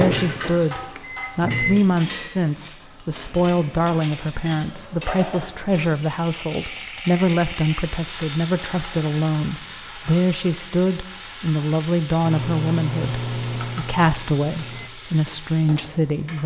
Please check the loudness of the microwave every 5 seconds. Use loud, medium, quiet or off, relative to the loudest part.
loud, off, loud, off.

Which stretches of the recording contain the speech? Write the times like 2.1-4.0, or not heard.
0.0-16.4.